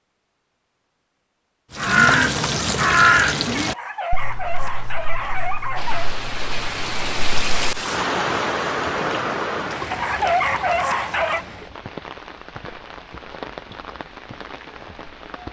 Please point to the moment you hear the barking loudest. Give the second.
10 s.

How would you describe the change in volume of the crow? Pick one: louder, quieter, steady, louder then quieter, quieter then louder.
quieter.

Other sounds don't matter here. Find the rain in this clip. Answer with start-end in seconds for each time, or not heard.
5.8-15.4.